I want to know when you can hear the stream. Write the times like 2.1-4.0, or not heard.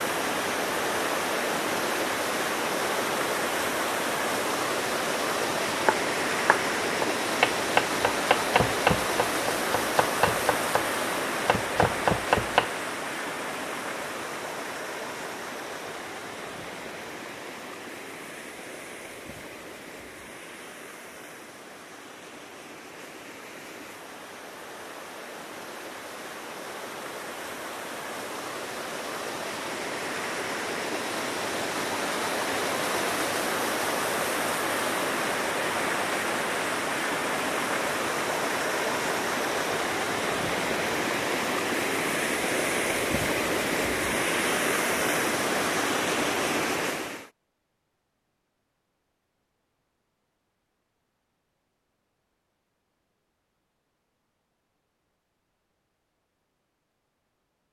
0.0-47.3.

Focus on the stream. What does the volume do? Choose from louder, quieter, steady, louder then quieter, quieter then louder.
quieter then louder.